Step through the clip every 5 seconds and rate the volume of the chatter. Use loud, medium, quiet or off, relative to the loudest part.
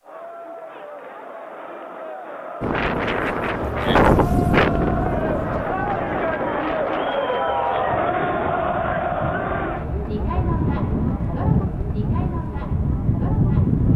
medium, loud, medium.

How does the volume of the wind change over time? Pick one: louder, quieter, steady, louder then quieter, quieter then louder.
quieter then louder.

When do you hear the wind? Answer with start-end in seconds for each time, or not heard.
2.6-13.9.